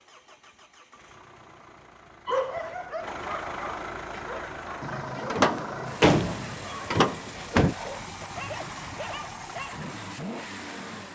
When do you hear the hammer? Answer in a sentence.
The hammer can't be heard in this clip.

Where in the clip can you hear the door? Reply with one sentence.
You can hear the door from 5.3 to 7.8 s.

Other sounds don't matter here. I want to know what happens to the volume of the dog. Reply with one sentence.
The volume of the dog goes down.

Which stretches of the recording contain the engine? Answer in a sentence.
The engine can be heard from 0.0 to 11.0 s.